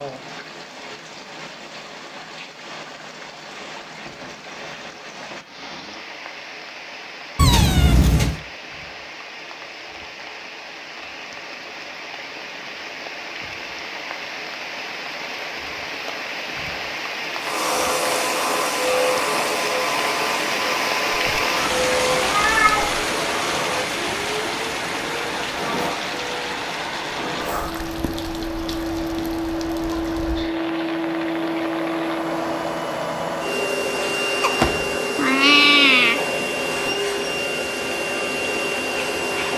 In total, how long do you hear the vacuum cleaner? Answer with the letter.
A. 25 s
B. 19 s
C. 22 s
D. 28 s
C.